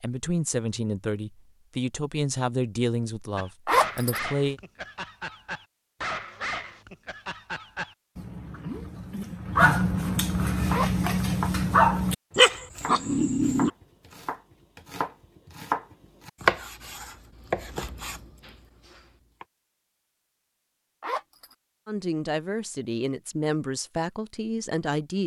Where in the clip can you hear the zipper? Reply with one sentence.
You can hear the zipper from 3.6 to 4.2 s, from 10.7 to 11.1 s and from 21.0 to 21.6 s.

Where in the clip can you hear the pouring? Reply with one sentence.
You can't hear the pouring here.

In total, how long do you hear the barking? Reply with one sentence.
You can hear the barking for 10 seconds altogether.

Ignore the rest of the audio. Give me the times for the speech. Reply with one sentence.
You can hear the speech from 0.0 to 4.6 s and from 21.9 to 25.2 s.